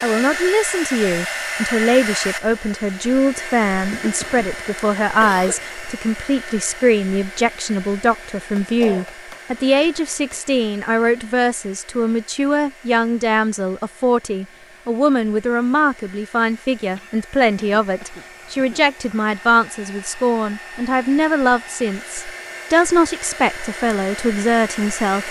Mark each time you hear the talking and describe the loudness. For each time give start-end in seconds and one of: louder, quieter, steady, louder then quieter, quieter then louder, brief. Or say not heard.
0.0-25.2 steady.